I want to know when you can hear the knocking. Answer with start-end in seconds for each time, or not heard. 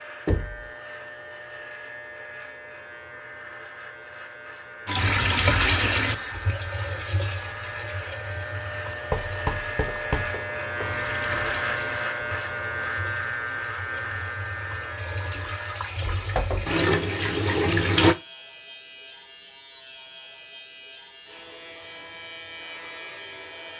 0.2-0.7, 9.1-10.9, 16.1-16.8.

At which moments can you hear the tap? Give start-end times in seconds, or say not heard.
4.8-18.1.